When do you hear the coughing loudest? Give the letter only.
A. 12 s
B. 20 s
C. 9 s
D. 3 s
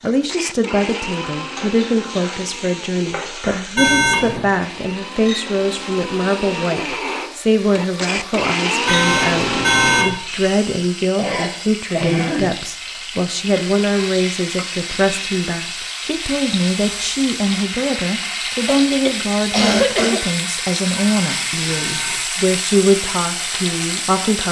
B.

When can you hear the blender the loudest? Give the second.
9 s.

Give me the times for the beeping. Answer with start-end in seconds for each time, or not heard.
3.8-4.5, 8.8-10.1, 20.9-22.2.